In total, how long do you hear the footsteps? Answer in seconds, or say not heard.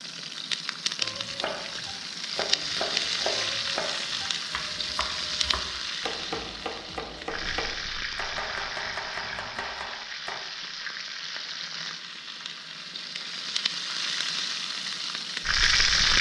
not heard.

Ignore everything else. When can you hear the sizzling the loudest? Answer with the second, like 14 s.
16 s.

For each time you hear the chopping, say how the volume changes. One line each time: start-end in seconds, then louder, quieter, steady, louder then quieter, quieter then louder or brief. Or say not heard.
1.0-10.4 steady.